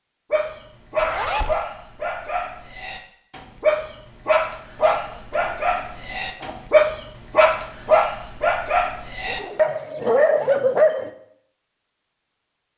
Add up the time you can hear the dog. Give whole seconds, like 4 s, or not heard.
11 s.